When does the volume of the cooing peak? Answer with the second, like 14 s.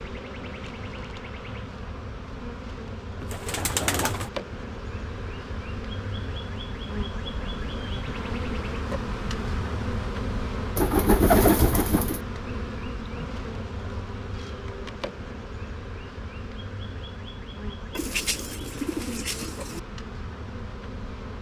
11 s.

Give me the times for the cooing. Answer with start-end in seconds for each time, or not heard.
3.2-4.3, 10.8-12.2, 17.9-19.8.